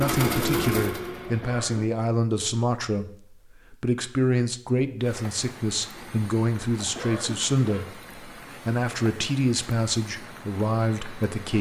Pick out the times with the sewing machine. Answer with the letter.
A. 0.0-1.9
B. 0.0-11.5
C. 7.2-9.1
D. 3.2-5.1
A.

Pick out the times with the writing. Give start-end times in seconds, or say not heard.
not heard.